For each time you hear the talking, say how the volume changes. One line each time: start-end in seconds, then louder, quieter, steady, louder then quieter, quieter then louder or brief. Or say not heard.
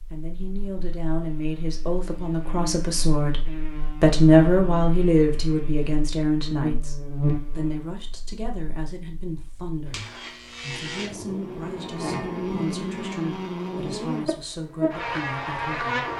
0.1-16.1 louder then quieter.